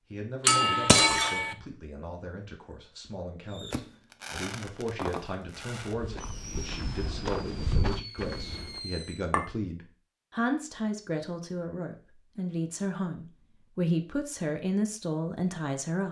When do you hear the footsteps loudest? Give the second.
8 s.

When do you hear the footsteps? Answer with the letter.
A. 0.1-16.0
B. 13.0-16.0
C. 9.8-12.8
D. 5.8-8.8
D.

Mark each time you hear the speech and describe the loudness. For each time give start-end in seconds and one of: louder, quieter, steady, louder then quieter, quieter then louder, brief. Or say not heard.
0.1-16.0 louder.